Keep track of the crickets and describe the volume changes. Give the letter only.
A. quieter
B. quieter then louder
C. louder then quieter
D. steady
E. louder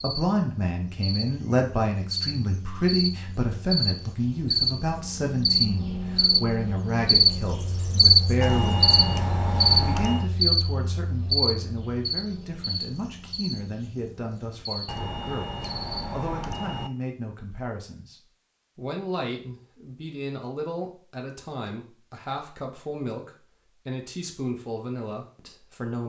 C.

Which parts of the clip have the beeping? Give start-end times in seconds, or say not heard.
8.4-10.3, 14.8-16.9.